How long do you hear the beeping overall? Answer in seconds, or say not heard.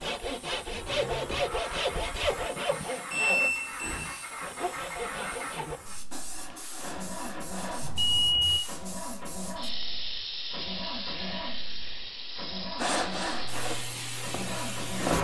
2 s.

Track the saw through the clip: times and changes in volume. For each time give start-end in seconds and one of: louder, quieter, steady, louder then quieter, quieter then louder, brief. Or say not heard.
0.0-8.0 quieter
12.8-15.1 brief.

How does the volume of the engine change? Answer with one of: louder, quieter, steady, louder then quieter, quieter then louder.
steady.